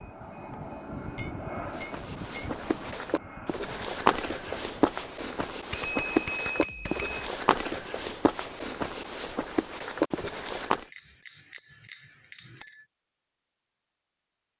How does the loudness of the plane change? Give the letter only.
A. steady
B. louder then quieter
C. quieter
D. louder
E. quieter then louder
C.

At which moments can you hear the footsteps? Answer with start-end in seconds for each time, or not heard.
1.6-10.8.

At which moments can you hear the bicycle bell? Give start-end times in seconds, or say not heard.
0.9-2.6, 5.7-7.3, 10.1-12.8.